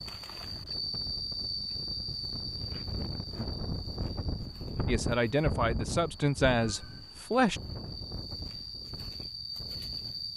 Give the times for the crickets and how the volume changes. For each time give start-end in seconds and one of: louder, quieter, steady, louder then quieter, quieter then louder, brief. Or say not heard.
0.0-10.3 quieter then louder.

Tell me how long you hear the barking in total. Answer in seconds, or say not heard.
not heard.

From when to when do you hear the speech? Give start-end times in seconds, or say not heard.
4.8-7.6.